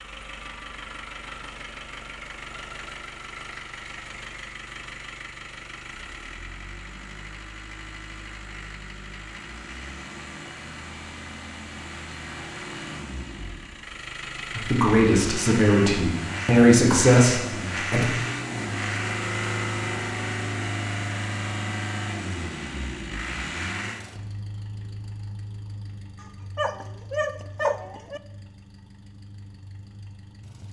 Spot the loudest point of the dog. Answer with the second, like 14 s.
28 s.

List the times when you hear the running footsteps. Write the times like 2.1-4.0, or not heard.
not heard.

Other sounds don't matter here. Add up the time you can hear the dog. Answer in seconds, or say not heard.
2 s.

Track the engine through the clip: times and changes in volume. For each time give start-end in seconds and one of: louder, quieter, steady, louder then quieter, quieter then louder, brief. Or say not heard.
0.0-30.6 louder then quieter.